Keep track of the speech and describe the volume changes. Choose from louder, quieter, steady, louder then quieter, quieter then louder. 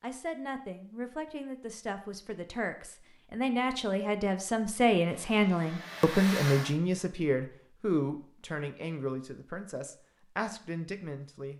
louder then quieter.